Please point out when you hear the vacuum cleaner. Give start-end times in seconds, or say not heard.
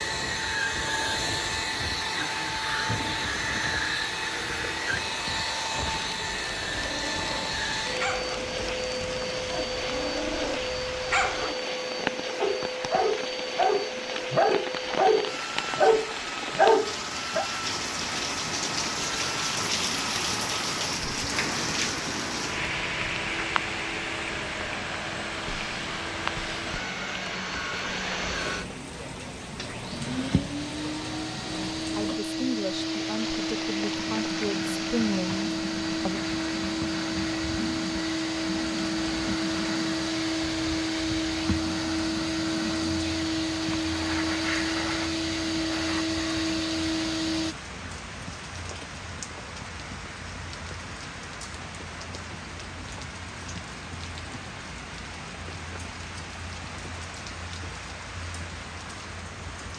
0.0-47.5.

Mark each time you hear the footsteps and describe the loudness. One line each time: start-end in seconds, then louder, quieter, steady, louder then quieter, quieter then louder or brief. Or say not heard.
not heard.